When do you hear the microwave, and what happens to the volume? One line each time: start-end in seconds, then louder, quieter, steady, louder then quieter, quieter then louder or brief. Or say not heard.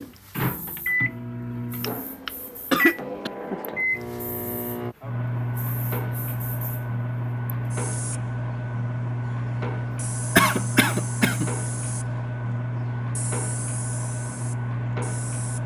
0.0-15.6 steady.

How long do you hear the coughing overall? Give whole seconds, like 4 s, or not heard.
3 s.